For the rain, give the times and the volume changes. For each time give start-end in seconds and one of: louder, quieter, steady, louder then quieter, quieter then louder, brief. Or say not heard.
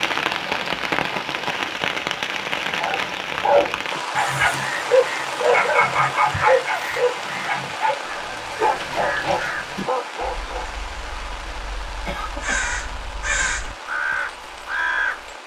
0.0-15.4 quieter.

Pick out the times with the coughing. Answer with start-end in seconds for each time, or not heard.
12.1-12.8.